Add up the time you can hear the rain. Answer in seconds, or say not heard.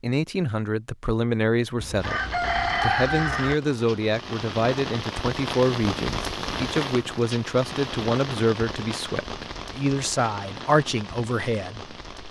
10 s.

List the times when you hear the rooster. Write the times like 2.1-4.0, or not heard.
1.8-3.5.